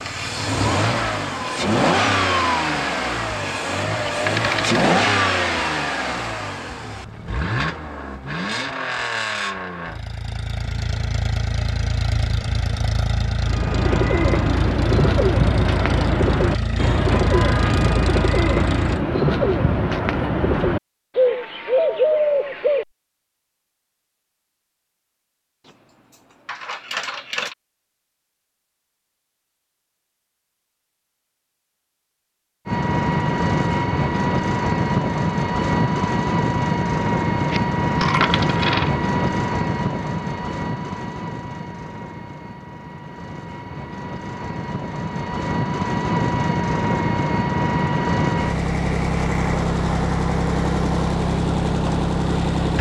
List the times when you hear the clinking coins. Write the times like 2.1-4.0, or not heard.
4.2-4.8, 25.6-27.6, 37.5-38.9.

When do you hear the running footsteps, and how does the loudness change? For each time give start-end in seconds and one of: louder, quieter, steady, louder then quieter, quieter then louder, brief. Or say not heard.
not heard.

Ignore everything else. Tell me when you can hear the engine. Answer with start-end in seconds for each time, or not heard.
0.0-19.1, 32.6-52.7.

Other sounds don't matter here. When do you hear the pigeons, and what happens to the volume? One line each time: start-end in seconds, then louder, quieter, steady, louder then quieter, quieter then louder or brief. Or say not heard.
13.4-22.9 steady.